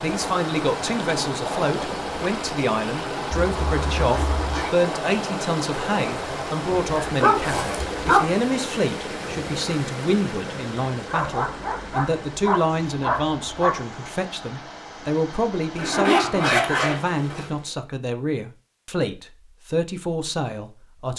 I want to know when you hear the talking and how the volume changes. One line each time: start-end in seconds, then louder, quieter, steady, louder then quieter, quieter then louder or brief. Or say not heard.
0.0-21.1 steady.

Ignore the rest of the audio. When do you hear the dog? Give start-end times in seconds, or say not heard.
6.8-8.3, 11.1-13.8.